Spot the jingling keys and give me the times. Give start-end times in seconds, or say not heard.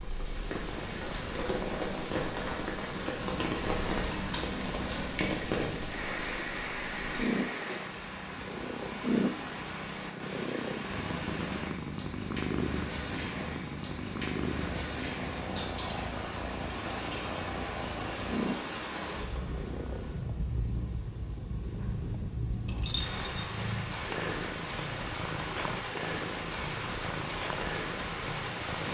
3.2-5.1, 22.6-23.4.